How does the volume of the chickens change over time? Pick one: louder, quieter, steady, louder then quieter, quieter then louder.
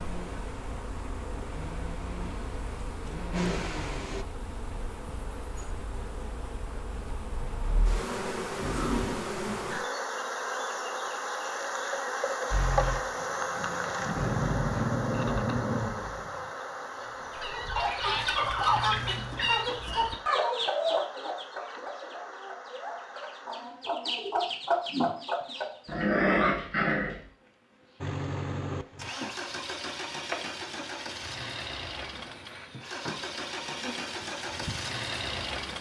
quieter then louder.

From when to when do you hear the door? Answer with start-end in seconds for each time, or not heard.
not heard.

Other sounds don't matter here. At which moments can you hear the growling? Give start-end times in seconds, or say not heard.
8.6-9.2, 14.2-16.2, 25.9-27.2.